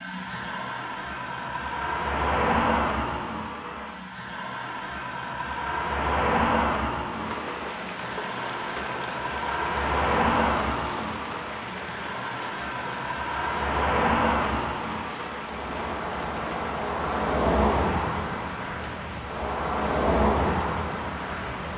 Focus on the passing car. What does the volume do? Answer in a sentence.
The volume of the passing car stays about the same.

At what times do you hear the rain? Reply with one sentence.
You can hear the rain from 7.0 to 21.7 s.